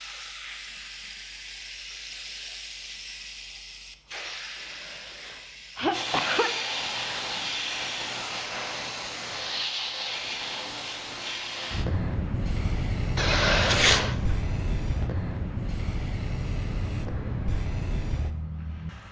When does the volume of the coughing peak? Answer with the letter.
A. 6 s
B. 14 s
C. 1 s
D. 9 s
B.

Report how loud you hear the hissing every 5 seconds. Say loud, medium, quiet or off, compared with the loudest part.
medium, loud, loud, loud.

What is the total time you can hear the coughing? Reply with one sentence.
You can hear the coughing for 3 seconds altogether.